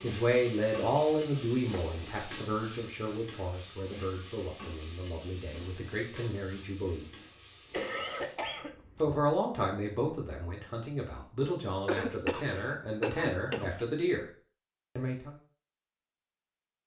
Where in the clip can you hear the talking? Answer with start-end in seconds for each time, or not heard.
0.0-7.0, 9.0-14.2, 14.9-15.3.